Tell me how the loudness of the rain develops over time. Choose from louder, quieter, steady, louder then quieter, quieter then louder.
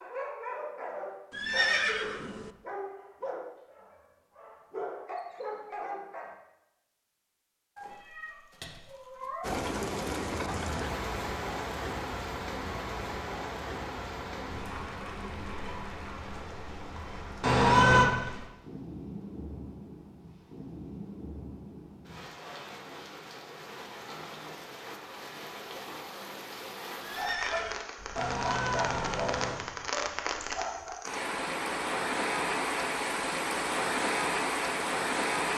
quieter then louder.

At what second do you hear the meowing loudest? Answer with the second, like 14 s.
18 s.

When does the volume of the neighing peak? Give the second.
2 s.